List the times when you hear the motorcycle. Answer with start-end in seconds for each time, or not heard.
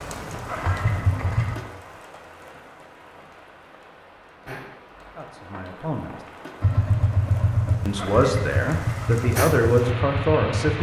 0.0-1.6, 6.6-10.7.